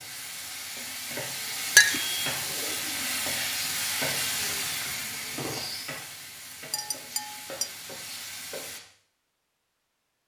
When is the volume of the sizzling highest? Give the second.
4 s.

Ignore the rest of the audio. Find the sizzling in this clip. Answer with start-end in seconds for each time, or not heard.
0.0-8.8.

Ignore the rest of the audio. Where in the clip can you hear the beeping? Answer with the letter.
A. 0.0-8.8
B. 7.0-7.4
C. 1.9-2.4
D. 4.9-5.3
C.